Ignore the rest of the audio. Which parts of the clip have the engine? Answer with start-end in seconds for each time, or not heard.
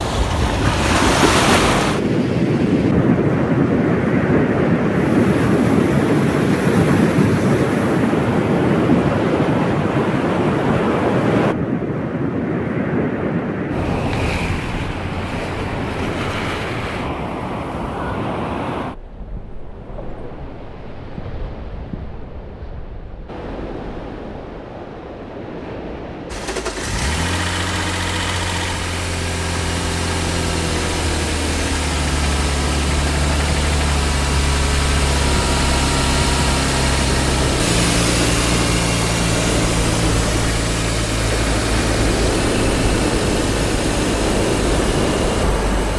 26.3-45.9.